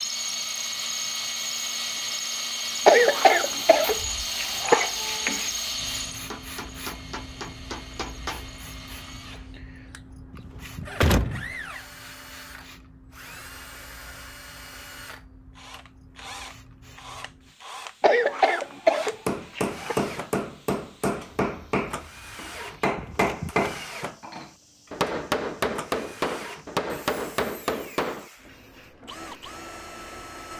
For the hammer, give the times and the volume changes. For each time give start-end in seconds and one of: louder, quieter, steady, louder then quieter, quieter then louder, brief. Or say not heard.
6.3-8.5 brief
19.2-28.2 steady.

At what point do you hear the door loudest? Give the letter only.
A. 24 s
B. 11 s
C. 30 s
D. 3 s
B.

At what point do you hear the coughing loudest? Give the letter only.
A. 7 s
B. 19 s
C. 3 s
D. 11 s
C.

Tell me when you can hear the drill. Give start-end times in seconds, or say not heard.
0.0-30.5.